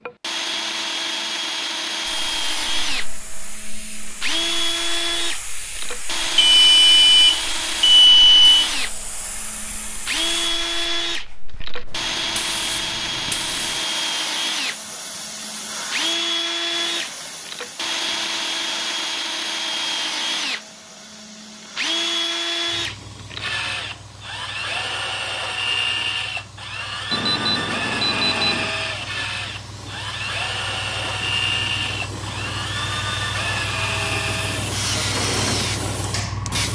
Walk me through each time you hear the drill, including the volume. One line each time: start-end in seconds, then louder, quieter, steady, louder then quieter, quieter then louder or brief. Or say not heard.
0.1-36.7 steady.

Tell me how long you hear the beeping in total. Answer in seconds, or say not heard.
4 s.